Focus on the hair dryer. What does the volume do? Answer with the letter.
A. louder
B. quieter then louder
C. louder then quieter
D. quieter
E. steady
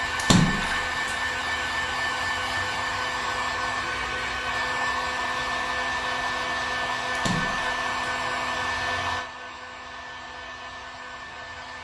D.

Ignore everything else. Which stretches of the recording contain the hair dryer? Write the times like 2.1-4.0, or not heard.
0.0-11.8.